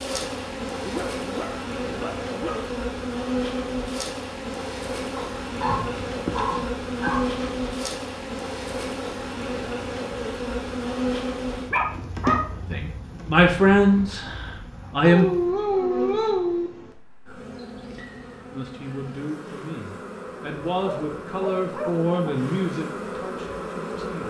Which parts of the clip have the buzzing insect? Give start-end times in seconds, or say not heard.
0.0-24.2.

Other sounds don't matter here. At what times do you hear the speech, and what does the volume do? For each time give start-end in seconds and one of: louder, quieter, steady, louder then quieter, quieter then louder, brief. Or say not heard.
12.7-15.3 brief
18.5-24.2 louder then quieter.